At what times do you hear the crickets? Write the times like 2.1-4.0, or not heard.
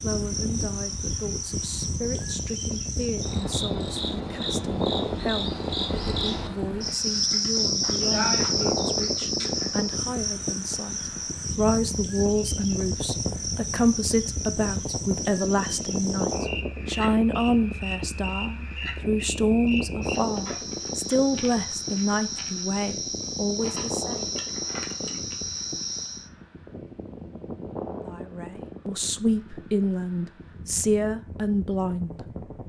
0.0-26.3.